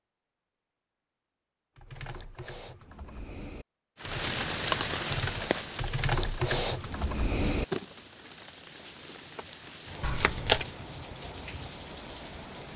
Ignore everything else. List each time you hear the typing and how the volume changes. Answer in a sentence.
You can hear the typing from 1.8 to 7.7 s, getting louder.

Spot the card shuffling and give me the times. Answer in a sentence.
The card shuffling can be heard from 10.0 to 10.7 s.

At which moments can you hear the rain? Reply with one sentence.
You can hear the rain from 4.0 to 12.7 s.